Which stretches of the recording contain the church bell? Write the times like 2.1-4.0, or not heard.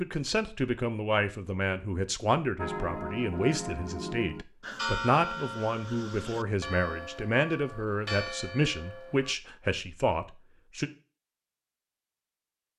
2.5-9.3.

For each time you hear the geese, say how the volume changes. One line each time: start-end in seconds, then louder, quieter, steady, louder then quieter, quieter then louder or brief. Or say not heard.
not heard.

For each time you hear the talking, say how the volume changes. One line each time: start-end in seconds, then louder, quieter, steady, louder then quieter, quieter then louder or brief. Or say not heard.
0.0-10.9 steady.